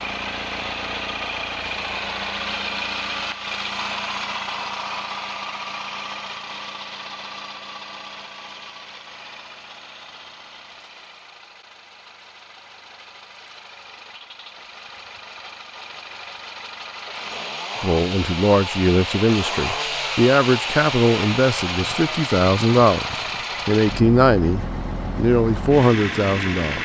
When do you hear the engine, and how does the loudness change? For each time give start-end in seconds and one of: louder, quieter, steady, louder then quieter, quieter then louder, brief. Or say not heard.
0.0-26.8 quieter then louder.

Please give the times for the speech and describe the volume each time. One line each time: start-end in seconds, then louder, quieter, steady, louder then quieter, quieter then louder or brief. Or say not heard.
17.8-26.8 steady.